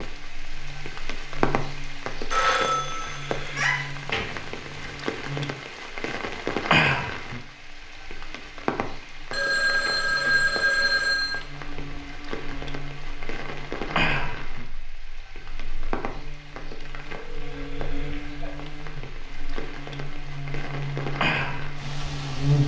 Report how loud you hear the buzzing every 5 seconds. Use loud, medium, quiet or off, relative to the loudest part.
quiet, quiet, quiet, quiet, loud.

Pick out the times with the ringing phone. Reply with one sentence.
You can hear the ringing phone from 2.3 to 3.8 s, from 9.3 to 11.3 s and from 17.1 to 18.5 s.